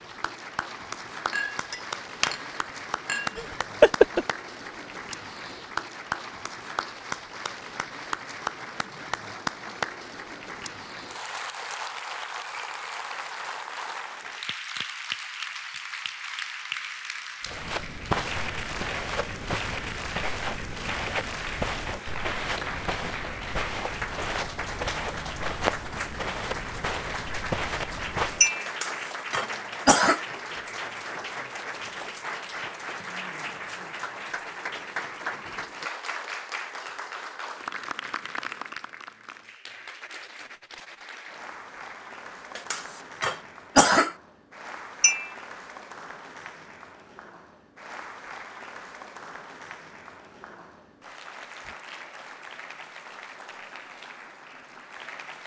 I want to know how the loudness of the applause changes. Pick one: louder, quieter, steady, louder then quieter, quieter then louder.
quieter.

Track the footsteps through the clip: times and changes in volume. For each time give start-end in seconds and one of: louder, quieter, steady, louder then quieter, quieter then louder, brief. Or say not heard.
17.4-28.5 steady.